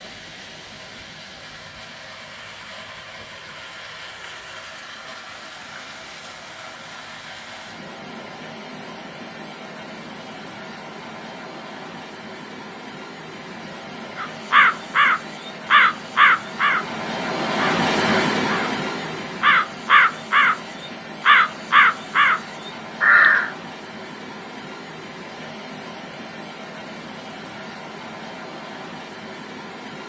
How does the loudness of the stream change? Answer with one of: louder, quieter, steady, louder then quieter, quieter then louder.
louder then quieter.